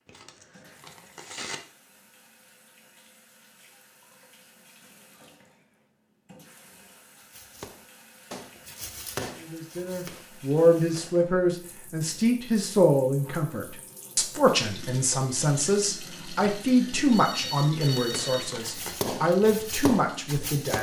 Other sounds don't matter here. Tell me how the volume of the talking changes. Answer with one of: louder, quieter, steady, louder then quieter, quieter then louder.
steady.